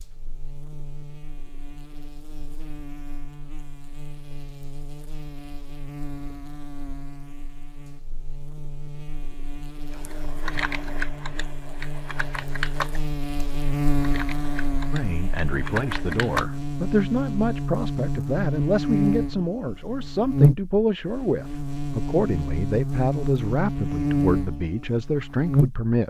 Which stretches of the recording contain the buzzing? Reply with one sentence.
The buzzing can be heard from 0.0 to 25.9 s.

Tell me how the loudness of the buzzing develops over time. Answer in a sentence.
The volume of the buzzing goes up.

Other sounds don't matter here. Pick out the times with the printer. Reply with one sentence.
The printer can't be heard in this clip.